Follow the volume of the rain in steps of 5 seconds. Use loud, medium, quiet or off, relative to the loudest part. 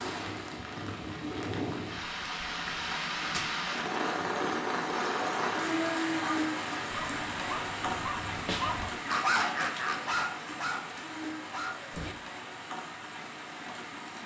loud, loud, medium.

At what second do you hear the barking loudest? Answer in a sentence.
The volume of the barking peaks at 9 seconds.